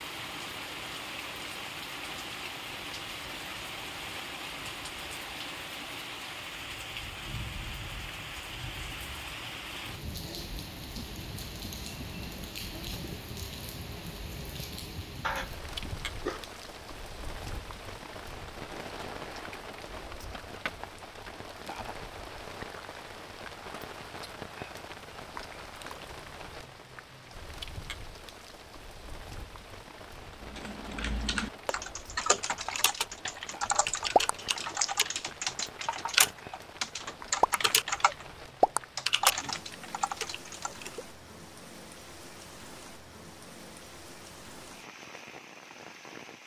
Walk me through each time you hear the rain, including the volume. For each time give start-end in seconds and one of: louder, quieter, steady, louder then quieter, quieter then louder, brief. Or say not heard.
0.0-46.4 quieter.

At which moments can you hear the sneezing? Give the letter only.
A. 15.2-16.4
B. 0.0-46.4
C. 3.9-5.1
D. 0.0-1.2
A.